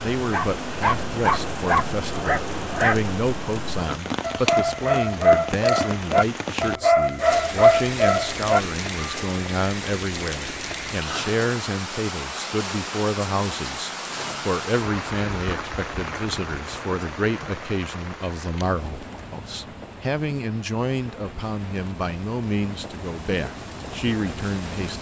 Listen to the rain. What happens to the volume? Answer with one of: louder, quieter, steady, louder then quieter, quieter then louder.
quieter.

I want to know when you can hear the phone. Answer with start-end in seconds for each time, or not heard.
not heard.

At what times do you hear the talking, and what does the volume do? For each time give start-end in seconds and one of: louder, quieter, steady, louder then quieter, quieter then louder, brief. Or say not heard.
0.0-24.9 steady.